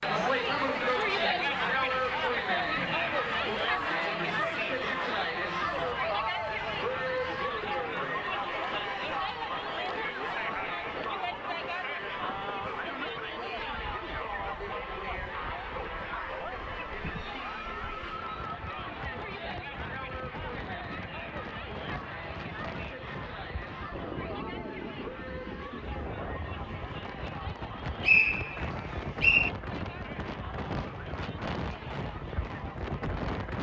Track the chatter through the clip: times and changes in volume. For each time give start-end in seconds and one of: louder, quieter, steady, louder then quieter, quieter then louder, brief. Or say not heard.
0.0-33.5 quieter.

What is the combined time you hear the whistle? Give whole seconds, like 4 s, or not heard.
2 s.